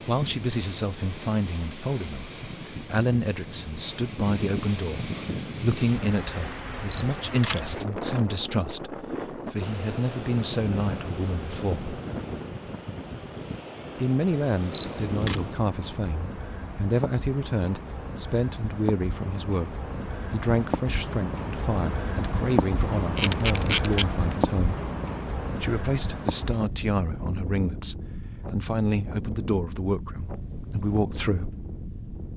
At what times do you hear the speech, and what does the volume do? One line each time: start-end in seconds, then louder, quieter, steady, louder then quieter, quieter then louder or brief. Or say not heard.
0.1-11.9 steady
13.9-24.8 steady
25.5-31.6 steady.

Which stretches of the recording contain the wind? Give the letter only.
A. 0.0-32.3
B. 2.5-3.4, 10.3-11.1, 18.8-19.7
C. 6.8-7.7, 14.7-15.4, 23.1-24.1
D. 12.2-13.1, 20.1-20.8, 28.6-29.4
A.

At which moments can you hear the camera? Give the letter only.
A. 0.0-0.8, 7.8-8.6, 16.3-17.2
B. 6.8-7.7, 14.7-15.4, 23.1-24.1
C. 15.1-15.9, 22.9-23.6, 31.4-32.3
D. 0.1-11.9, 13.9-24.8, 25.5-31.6
B.